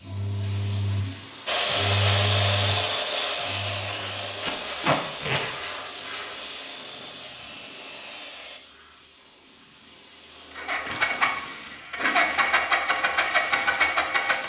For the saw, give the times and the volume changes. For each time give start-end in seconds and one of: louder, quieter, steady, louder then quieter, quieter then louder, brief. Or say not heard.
1.4-8.6 quieter.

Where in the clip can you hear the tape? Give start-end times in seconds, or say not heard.
4.4-5.4.